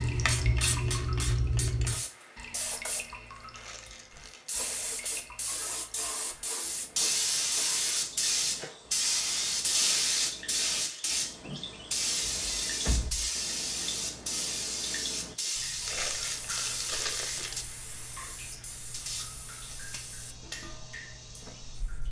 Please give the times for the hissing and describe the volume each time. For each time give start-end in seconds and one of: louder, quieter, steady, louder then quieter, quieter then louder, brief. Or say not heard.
0.0-22.0 quieter.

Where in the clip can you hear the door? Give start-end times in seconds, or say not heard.
12.2-13.3.